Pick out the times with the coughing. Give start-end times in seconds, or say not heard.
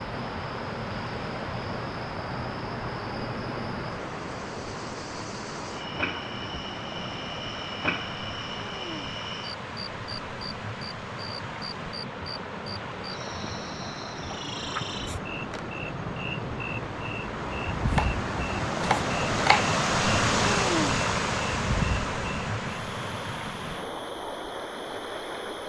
not heard.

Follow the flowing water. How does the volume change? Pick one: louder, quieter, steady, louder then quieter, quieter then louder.
louder.